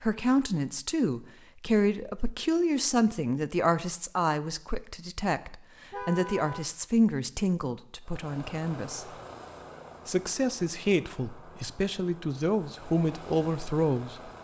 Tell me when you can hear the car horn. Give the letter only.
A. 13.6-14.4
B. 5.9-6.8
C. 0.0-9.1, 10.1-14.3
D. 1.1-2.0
B.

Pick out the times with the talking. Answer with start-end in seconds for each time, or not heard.
0.0-9.1, 10.1-14.3.